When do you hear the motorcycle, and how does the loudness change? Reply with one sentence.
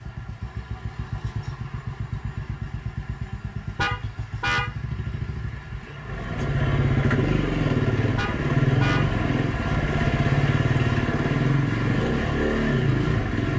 You can hear the motorcycle from 0.0 to 13.5 s, getting louder.